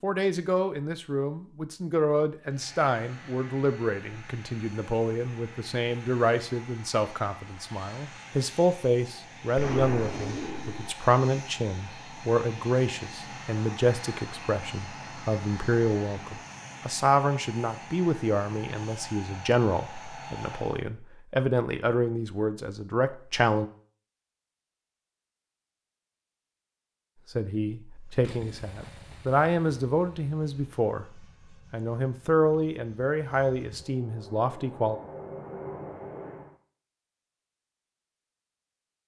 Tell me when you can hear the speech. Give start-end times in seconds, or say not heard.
0.0-23.7, 27.3-35.0.